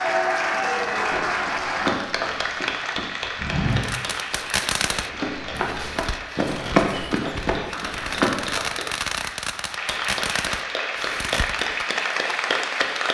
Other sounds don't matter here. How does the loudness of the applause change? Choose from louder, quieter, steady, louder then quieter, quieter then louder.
quieter then louder.